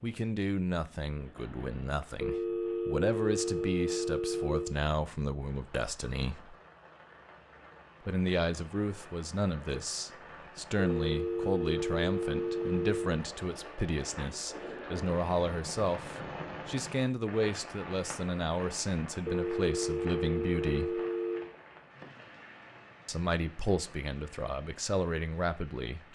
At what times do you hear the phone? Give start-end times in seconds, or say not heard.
2.2-4.8, 10.8-13.2, 19.2-21.5.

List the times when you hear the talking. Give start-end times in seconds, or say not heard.
0.0-6.5, 8.1-21.0, 23.1-26.0.